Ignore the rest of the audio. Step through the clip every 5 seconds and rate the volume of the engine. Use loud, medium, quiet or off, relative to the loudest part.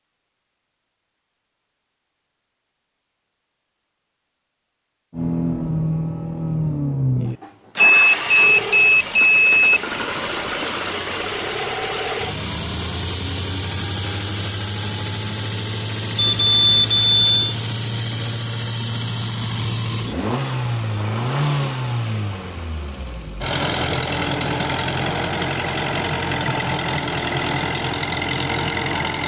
off, loud, loud, loud, loud, loud.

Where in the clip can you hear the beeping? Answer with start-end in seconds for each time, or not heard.
7.8-9.8, 16.1-17.6.